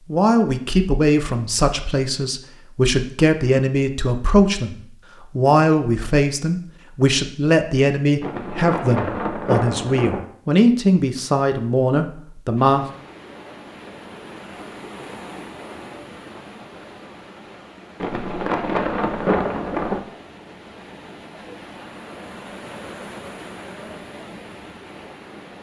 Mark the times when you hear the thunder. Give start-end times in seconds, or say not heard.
8.2-10.2, 18.0-20.0.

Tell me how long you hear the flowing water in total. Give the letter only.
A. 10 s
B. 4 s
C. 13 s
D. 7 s
C.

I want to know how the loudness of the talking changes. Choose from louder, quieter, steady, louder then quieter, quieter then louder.
steady.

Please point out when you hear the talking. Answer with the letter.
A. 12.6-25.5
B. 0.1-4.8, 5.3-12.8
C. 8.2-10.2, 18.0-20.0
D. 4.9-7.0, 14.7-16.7
B.